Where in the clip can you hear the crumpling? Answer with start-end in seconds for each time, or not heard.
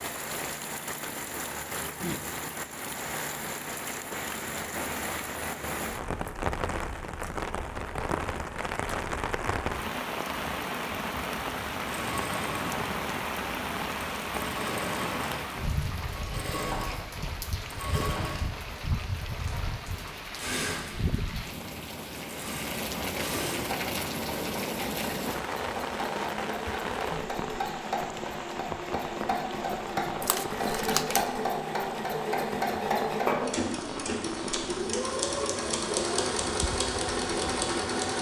30.2-31.3.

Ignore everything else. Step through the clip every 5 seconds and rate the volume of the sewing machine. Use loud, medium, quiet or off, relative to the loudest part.
off, off, medium, medium, medium, medium, loud, loud.